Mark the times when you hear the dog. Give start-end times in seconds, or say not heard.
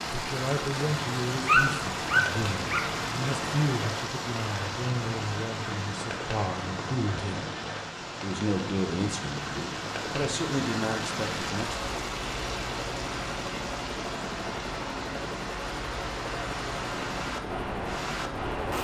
1.3-3.1.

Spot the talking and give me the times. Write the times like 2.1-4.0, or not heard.
0.1-7.4, 8.2-11.9.